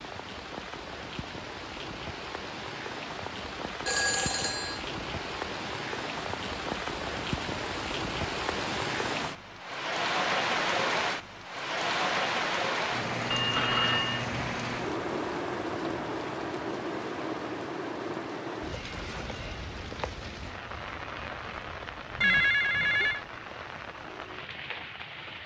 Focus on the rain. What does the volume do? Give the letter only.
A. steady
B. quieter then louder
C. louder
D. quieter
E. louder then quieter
E.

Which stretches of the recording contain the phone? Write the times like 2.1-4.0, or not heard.
3.9-4.8, 13.3-14.2, 22.2-23.2.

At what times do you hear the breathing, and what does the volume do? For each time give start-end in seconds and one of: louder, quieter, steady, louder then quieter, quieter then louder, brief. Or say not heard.
not heard.